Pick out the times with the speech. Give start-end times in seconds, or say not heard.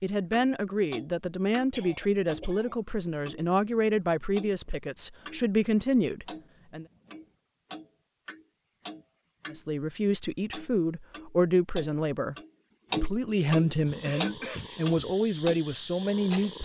0.0-6.8, 9.5-12.3, 12.9-16.5.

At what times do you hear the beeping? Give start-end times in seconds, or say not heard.
not heard.